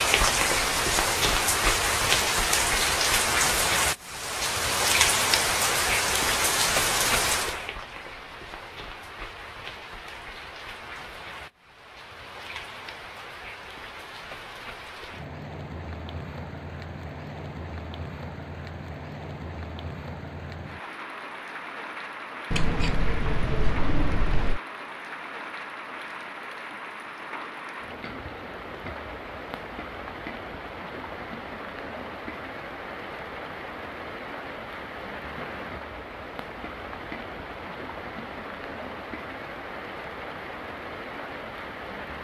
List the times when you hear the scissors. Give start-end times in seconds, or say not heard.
22.5-24.6.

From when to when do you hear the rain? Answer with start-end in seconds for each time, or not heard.
0.0-42.1.